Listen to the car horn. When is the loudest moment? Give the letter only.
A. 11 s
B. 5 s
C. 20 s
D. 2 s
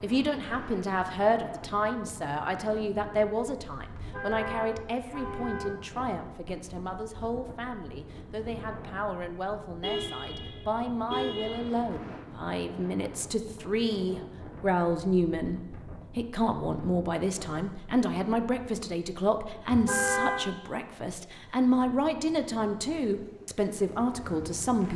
C.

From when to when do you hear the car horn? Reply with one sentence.
The car horn can be heard from 4.0 to 5.8 s, from 9.8 to 11.6 s and from 19.6 to 20.4 s.